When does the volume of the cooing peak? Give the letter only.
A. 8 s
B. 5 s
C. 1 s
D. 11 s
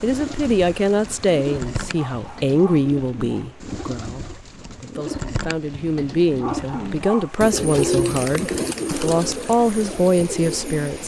A.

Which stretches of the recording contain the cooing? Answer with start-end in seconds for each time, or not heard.
0.0-11.0.